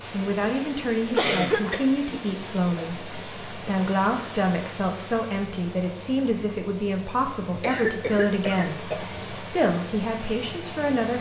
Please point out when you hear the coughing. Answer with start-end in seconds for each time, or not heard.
1.1-1.8, 7.4-9.2.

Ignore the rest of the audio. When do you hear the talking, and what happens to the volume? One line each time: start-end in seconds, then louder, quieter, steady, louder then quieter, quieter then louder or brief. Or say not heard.
0.1-11.1 steady.